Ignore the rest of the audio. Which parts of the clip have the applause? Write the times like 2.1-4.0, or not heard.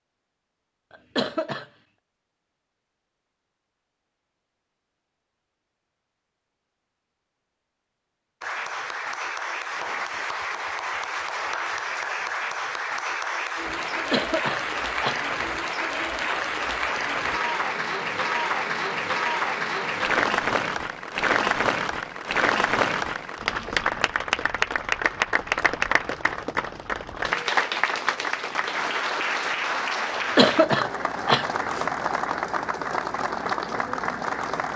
8.4-34.7.